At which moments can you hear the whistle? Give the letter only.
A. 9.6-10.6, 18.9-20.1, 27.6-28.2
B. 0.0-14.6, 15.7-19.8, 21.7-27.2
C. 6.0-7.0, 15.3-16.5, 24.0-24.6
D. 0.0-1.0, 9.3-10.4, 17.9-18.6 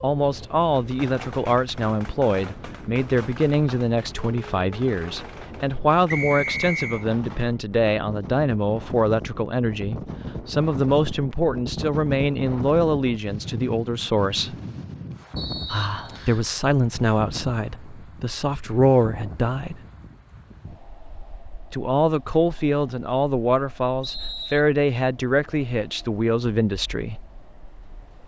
C.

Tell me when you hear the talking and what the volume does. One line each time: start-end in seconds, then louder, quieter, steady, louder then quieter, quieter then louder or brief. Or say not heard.
0.0-14.6 steady
15.7-19.8 quieter then louder
21.7-27.2 steady.